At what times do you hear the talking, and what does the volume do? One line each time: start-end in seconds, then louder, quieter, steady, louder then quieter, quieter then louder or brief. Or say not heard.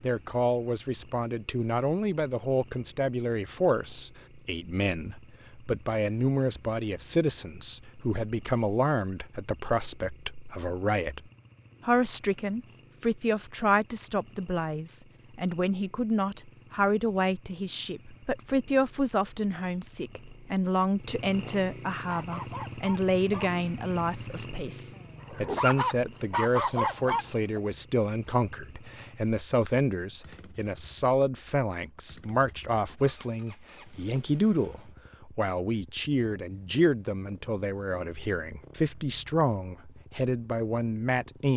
0.0-11.2 steady
11.8-41.5 steady.